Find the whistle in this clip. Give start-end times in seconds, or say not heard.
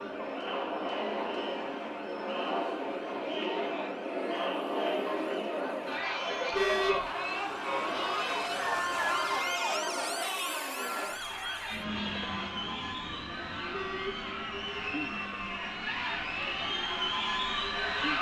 not heard.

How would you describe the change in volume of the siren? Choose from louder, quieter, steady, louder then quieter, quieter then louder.
louder then quieter.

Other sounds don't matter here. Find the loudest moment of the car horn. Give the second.
7 s.